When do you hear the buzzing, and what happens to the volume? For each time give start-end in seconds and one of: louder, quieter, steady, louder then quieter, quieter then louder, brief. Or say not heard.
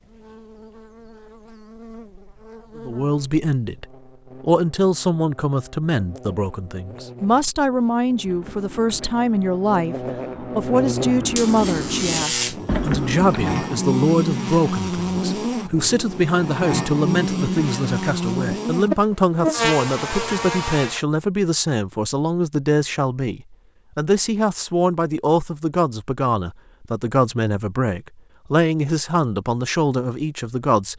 0.0-21.0 louder.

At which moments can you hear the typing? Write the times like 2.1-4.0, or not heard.
8.2-13.6.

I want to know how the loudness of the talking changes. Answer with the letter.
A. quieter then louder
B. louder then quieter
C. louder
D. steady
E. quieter
D.